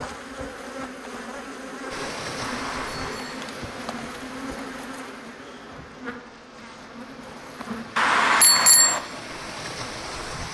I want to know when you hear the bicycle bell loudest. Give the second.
9 s.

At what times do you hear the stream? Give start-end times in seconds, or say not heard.
1.9-10.4.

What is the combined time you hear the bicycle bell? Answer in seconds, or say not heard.
2 s.